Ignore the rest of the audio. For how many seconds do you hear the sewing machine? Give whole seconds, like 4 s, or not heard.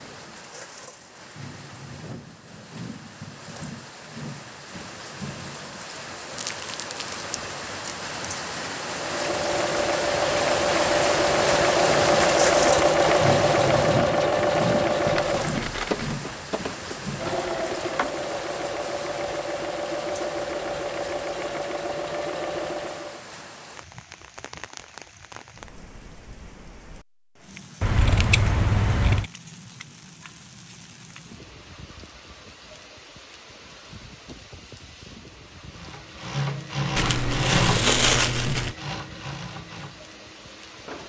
20 s.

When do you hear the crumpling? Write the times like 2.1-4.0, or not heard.
6.3-7.2, 15.0-16.1, 37.0-38.8.